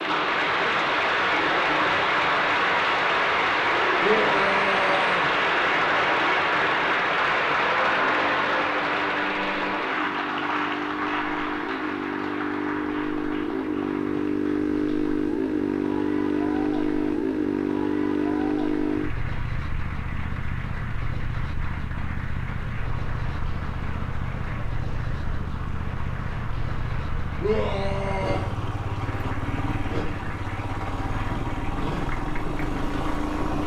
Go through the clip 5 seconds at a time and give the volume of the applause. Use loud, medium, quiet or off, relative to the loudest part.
loud, loud, medium, quiet, quiet, quiet, quiet.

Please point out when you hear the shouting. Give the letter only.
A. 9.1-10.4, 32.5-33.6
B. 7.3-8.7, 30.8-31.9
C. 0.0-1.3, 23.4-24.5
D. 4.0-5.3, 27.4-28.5
D.